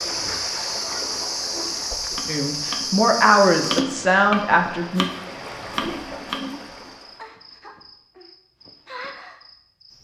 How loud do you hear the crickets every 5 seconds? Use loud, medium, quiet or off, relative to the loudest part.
loud, quiet.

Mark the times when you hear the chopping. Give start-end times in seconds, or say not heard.
1.9-7.2.